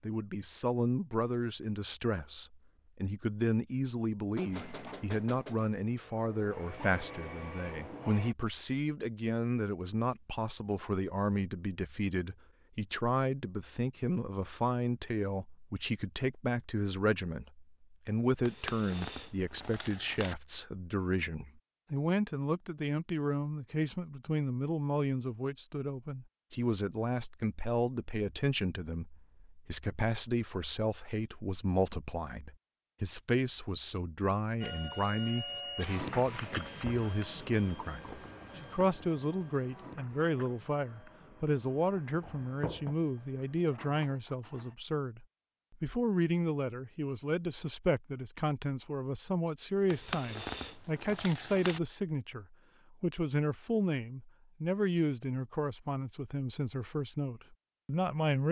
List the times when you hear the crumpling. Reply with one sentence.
The crumpling can be heard from 18.4 to 20.4 s and from 49.9 to 51.8 s.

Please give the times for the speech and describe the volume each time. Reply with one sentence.
The speech can be heard from 0.0 to 58.4 s, at a steady volume.